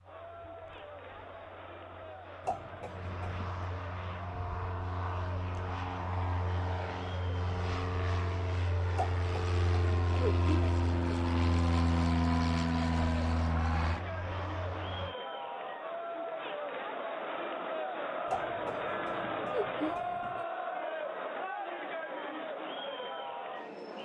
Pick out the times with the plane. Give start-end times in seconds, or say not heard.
0.0-15.2.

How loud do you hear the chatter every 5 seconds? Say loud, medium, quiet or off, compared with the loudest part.
medium, medium, medium, loud, loud.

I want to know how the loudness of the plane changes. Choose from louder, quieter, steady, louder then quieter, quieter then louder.
louder.